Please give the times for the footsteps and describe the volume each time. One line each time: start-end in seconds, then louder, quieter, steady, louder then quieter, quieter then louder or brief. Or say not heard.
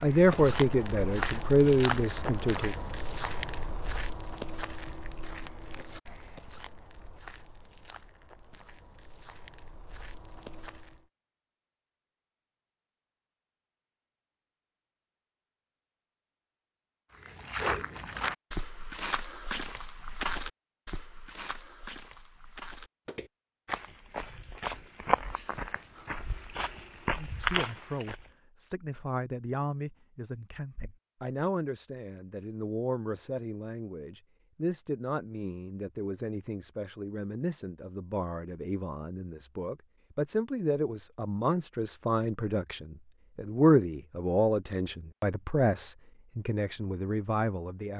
0.0-11.1 quieter
17.1-28.3 quieter then louder.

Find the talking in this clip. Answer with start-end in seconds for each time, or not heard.
0.0-2.8, 27.1-47.9.